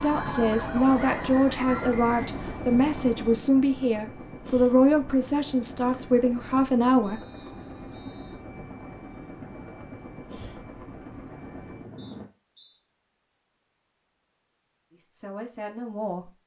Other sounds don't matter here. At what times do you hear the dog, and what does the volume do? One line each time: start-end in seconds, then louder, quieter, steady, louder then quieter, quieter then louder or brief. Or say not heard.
not heard.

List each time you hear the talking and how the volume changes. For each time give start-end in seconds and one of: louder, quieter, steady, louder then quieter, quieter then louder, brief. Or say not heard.
0.0-7.2 steady
14.9-16.3 brief.